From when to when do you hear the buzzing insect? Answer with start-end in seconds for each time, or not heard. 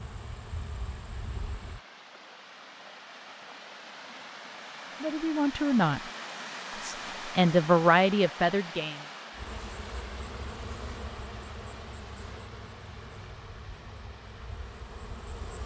0.0-1.8, 9.3-15.6.